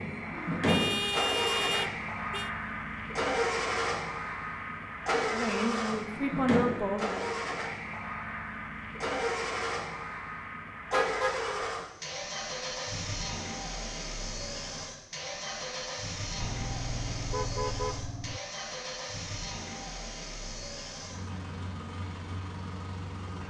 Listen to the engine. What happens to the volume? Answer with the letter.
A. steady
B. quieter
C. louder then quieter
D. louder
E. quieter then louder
B.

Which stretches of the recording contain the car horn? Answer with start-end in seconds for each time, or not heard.
0.7-2.5, 10.9-11.6, 16.4-18.4.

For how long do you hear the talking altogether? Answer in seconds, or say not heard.
2 s.